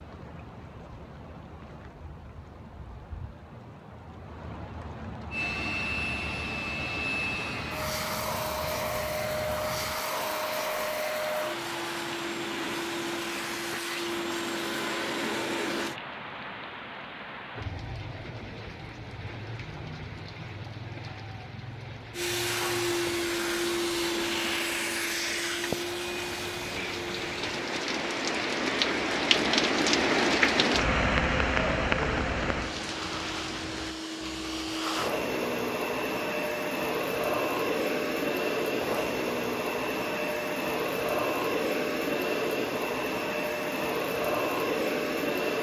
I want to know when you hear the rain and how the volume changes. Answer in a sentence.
The rain can be heard from 0.0 to 34.0 s, getting louder.